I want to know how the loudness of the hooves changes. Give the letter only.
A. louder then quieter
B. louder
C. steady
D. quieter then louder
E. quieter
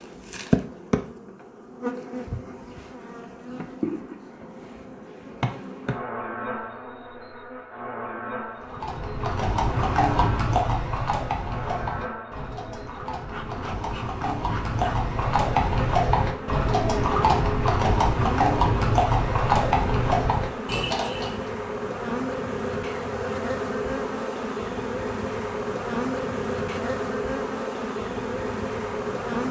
D.